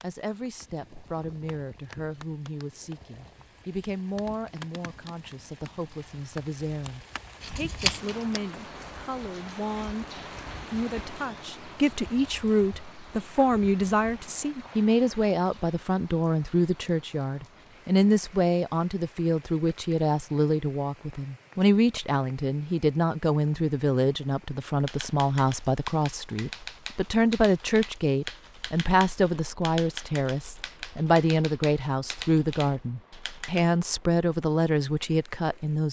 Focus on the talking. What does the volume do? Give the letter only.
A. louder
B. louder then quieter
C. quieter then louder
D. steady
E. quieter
A.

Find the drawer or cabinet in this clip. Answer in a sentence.
The drawer or cabinet can't be heard in this clip.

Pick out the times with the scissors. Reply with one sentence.
You can hear the scissors from 7.4 to 8.4 s.